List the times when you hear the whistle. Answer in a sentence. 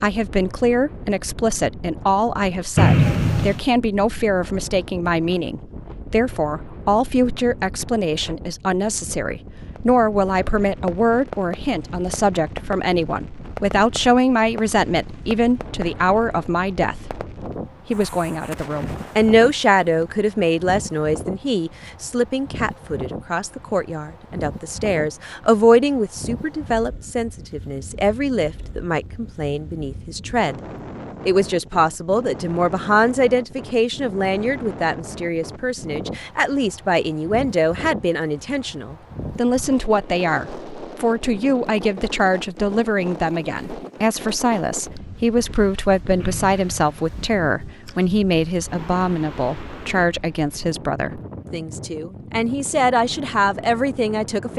The whistle can be heard from 2.8 to 3.6 s and from 46.2 to 47.1 s.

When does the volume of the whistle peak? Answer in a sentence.
The volume of the whistle peaks at 3 seconds.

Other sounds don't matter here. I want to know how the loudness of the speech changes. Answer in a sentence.
The volume of the speech stays about the same.